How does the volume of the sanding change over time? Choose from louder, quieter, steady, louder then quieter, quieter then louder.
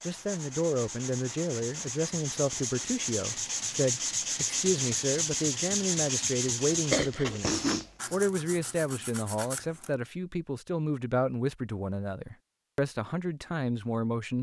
louder then quieter.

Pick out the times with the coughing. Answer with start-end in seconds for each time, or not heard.
6.9-7.9.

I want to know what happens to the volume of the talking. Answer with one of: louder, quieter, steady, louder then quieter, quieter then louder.
steady.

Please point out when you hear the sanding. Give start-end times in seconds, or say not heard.
0.0-9.9.